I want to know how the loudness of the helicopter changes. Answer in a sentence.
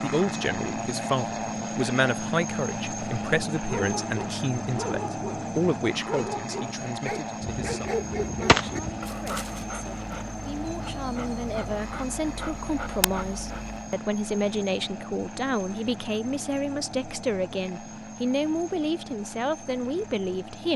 The volume of the helicopter goes down.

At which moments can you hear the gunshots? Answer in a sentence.
You can hear the gunshots from 7.4 to 9.0 s.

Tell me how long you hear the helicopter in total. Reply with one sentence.
The helicopter can be heard for 21 seconds in total.